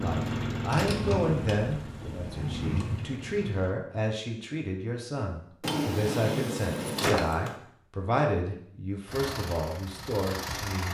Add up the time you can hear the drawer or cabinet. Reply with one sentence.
The drawer or cabinet can be heard for 4 seconds in total.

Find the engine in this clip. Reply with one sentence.
The engine can be heard from 0.0 to 3.8 s and from 9.1 to 10.8 s.